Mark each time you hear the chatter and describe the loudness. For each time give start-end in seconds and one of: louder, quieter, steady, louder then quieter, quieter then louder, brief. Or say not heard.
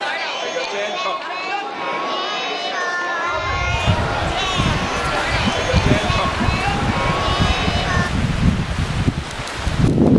0.0-8.1 steady.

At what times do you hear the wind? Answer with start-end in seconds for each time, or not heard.
3.4-10.1.